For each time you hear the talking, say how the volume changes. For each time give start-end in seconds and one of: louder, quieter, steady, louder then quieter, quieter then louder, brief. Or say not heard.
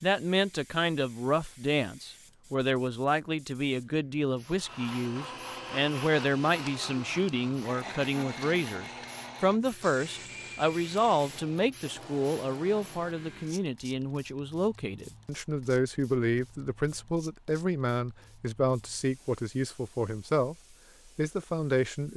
0.0-20.6 steady
21.1-22.1 brief.